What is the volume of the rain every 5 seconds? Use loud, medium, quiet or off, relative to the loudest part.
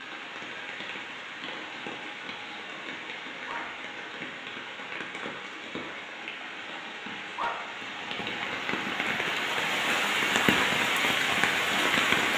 quiet, medium, loud.